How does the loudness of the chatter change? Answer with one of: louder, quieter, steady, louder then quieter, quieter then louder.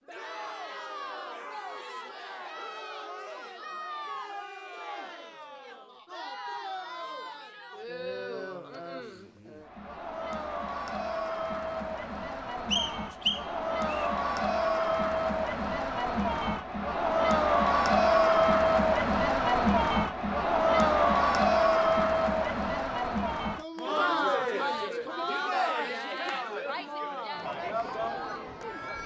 louder then quieter.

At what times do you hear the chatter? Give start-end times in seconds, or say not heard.
0.1-29.0.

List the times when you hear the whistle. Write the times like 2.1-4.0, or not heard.
12.7-14.1.